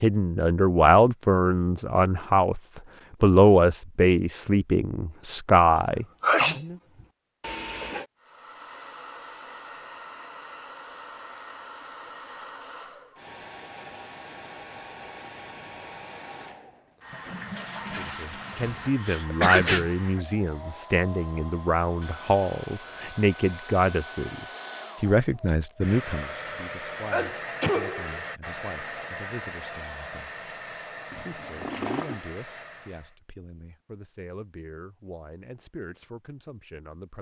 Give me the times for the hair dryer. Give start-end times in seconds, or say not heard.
8.2-33.1.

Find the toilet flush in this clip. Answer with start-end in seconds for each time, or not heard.
7.4-8.1, 17.1-18.9, 31.1-32.2.